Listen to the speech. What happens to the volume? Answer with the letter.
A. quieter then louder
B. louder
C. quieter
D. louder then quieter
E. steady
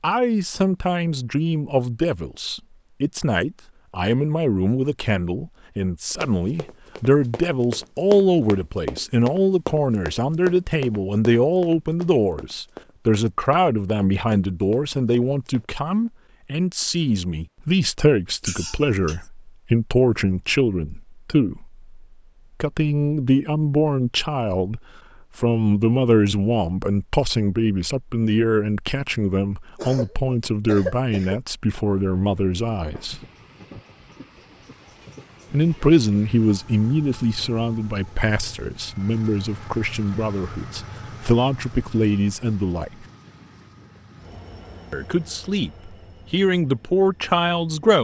E.